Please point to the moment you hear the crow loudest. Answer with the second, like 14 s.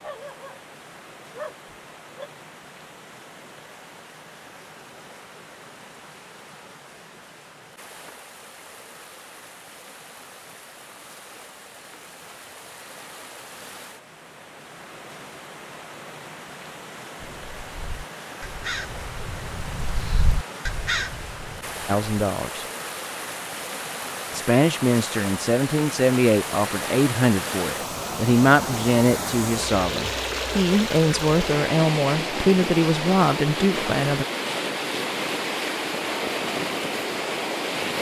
21 s.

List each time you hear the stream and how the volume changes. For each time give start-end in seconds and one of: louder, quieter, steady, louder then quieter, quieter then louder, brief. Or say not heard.
0.0-37.9 louder.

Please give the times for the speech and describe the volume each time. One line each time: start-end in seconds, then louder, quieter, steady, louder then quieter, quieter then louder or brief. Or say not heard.
21.9-22.6 brief
24.3-34.2 steady.